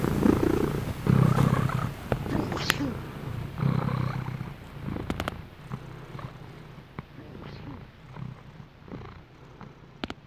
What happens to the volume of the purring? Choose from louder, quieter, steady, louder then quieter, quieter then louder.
quieter.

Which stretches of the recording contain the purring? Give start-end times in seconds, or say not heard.
0.0-10.2.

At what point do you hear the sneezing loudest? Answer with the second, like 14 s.
3 s.